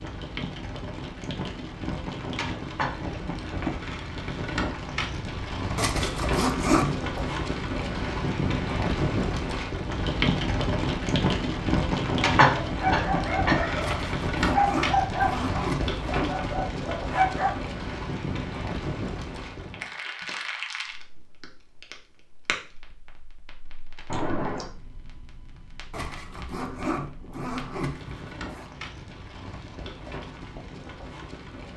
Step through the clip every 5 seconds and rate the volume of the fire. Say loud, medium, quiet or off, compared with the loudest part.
medium, loud, loud, medium, quiet, quiet, quiet.